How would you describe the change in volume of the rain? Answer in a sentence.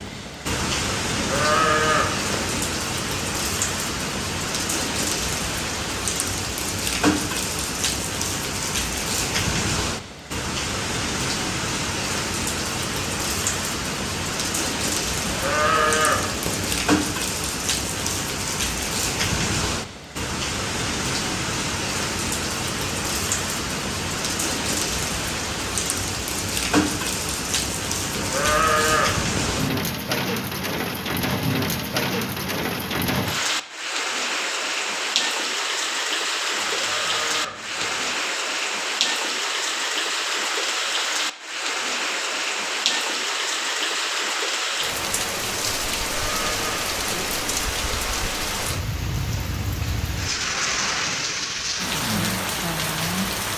The loudness of the rain stays about the same.